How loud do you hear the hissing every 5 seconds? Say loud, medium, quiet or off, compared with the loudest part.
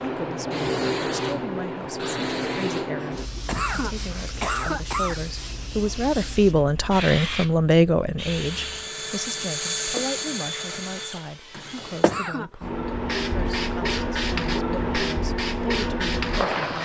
loud, medium, loud, loud.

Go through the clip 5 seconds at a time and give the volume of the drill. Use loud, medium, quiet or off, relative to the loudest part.
off, loud, loud, off.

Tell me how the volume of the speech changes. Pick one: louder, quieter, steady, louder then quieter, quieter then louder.
louder then quieter.